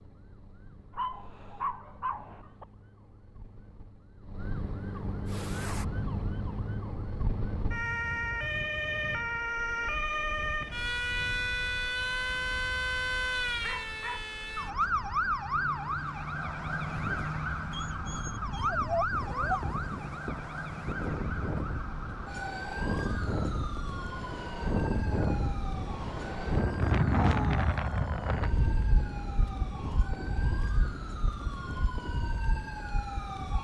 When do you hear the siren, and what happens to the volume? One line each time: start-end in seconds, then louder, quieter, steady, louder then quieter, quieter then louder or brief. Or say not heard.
0.0-33.6 louder then quieter.